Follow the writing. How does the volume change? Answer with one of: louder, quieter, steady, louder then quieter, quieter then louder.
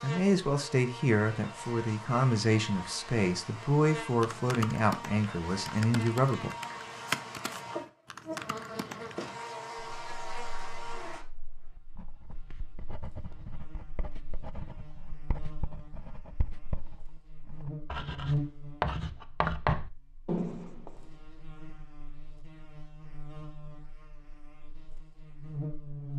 louder.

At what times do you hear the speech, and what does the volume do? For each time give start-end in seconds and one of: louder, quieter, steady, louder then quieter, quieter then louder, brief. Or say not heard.
0.0-6.5 steady.